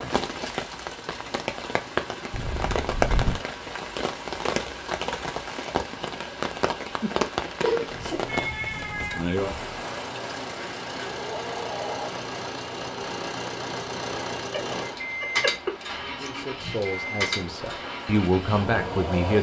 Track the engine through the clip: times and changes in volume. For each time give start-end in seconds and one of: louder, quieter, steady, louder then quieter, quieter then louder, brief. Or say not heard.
0.2-19.3 louder.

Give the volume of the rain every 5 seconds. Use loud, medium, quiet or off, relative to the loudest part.
loud, loud, medium, medium.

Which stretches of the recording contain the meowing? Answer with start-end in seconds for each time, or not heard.
2.3-3.4, 7.6-9.2, 14.5-16.3.